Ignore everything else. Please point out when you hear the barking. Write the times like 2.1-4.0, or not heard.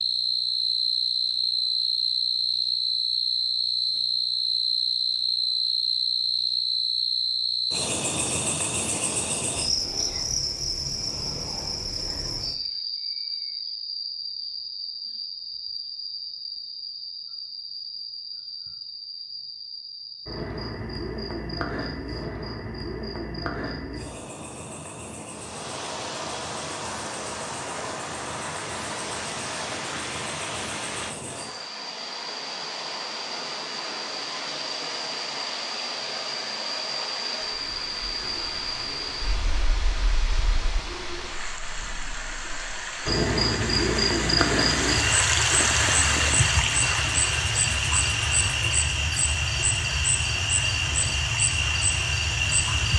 not heard.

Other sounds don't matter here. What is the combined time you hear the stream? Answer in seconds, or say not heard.
28 s.